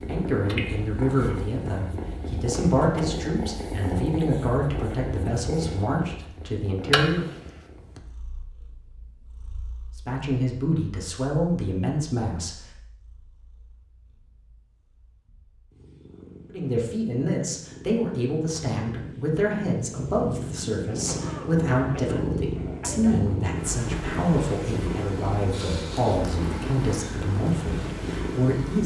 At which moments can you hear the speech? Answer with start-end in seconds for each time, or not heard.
0.1-7.2, 10.1-12.6, 16.5-28.8.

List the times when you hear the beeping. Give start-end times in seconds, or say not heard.
not heard.